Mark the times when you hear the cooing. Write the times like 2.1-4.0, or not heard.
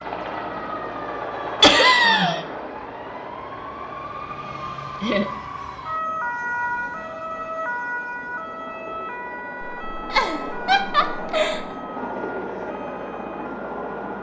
not heard.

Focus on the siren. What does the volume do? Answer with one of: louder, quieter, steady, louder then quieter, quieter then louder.
louder then quieter.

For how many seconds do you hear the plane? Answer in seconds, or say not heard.
14 s.